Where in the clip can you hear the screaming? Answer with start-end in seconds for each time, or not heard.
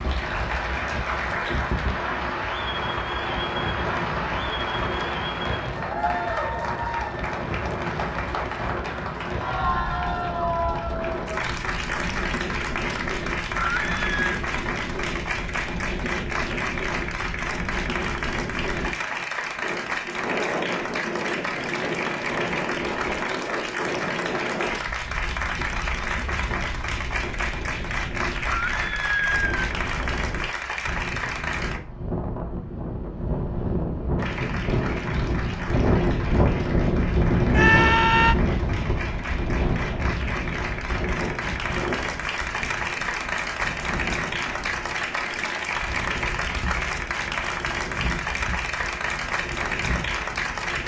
13.6-14.4, 28.6-29.6, 37.5-38.4.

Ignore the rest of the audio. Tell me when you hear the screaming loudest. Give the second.
38 s.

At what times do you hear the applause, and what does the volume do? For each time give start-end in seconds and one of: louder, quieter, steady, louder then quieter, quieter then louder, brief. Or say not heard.
0.0-31.8 steady
34.1-50.8 louder.